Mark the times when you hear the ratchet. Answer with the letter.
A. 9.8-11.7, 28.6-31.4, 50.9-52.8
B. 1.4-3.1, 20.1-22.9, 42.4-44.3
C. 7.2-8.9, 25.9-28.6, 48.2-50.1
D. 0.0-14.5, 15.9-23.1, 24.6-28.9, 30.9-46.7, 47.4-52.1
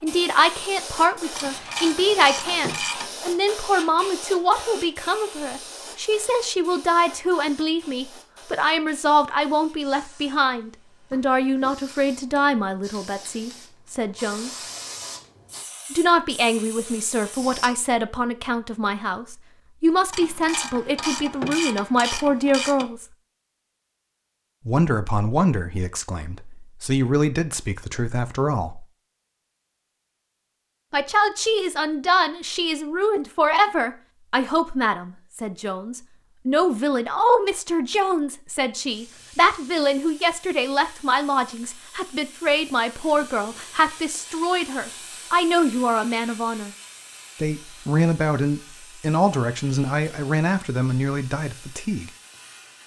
B.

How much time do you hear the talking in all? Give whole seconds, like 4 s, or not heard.
46 s.